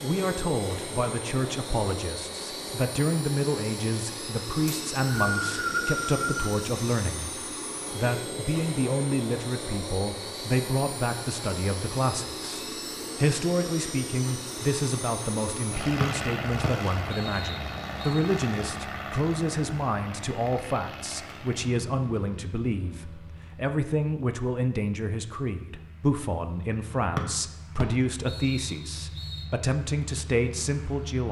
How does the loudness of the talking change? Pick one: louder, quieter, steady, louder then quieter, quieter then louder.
steady.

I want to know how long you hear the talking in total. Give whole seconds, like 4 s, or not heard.
31 s.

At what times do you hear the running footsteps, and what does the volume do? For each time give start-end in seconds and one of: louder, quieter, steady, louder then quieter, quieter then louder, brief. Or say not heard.
not heard.